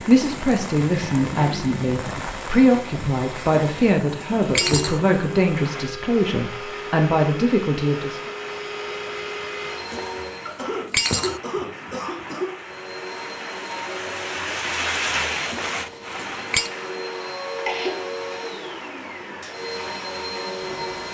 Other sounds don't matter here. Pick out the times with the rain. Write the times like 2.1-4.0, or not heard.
0.0-21.0.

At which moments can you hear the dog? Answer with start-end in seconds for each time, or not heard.
not heard.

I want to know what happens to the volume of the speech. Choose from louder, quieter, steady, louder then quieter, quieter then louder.
steady.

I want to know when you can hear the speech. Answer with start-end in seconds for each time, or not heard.
0.1-8.3.